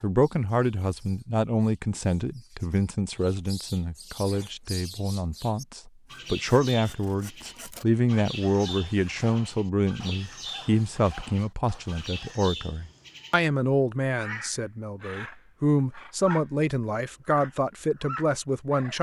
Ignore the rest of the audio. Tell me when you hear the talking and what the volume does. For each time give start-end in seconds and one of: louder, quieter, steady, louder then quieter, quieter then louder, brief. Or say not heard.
0.0-18.9 steady.